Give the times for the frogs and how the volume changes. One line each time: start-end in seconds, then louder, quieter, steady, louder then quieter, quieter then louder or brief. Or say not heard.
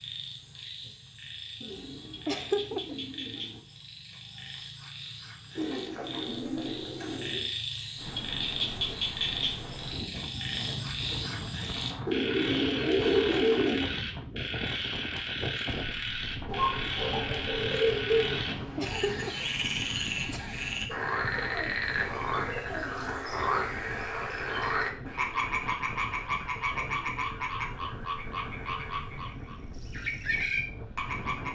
0.0-31.4 louder.